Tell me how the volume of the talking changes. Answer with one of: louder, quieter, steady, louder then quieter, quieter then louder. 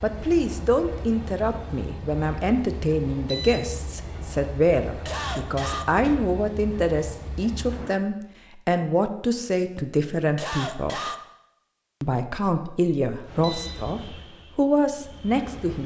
steady.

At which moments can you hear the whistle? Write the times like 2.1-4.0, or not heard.
not heard.